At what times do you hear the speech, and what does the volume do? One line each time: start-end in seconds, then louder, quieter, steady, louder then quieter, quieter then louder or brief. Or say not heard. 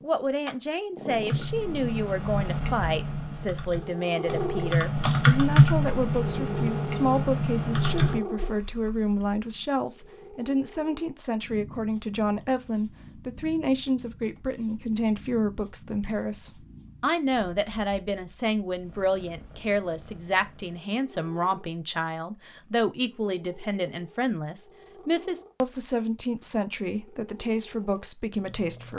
0.0-28.9 steady.